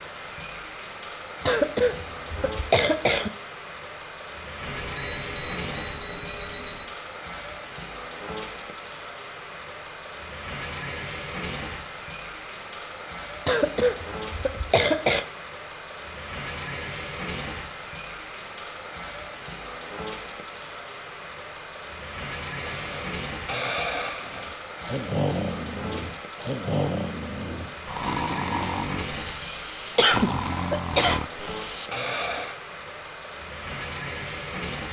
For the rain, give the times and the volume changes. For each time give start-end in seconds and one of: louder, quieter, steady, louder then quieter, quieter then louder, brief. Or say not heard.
0.0-34.8 steady.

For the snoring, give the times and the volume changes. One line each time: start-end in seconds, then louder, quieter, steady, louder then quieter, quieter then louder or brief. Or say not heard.
22.6-32.6 steady.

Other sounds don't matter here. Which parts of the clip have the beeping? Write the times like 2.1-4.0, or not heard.
4.6-6.9.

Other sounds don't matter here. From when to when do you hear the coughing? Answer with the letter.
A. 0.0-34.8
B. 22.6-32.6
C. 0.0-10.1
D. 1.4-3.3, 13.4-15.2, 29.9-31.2
D.